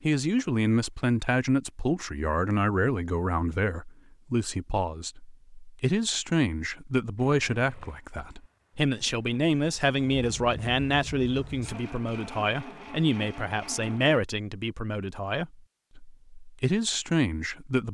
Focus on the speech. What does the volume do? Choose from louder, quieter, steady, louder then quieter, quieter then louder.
steady.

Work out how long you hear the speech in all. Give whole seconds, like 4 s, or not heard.
18 s.